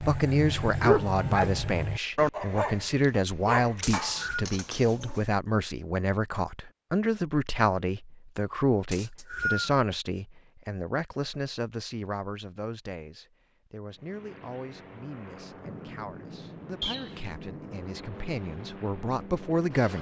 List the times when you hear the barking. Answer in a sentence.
The barking can be heard from 0.0 to 5.2 s.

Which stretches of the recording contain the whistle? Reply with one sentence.
You can hear the whistle from 3.8 to 4.5 s, from 8.9 to 9.7 s and from 16.8 to 17.3 s.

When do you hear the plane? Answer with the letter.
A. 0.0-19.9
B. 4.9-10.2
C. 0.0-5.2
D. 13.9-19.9
D.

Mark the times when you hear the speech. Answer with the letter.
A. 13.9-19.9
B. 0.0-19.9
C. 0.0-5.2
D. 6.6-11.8
B.